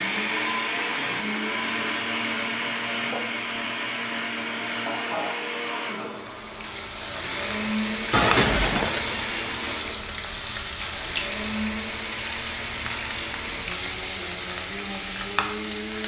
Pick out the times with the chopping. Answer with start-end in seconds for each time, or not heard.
not heard.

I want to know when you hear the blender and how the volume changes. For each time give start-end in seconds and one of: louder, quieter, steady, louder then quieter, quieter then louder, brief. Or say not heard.
0.0-16.0 quieter.